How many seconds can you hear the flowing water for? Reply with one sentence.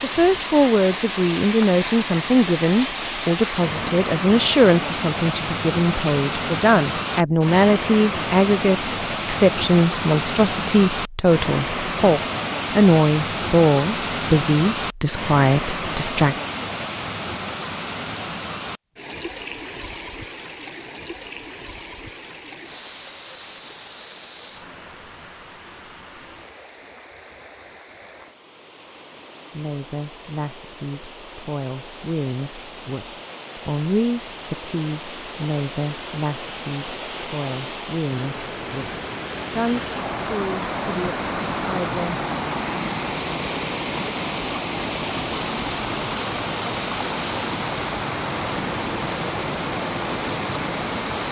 You can hear the flowing water for 51 seconds altogether.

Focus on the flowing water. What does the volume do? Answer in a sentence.
The loudness of the flowing water goes down, then up.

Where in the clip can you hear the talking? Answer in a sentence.
You can hear the talking from 0.0 to 16.4 s and from 29.5 to 42.1 s.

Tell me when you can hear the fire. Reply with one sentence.
You can't hear the fire here.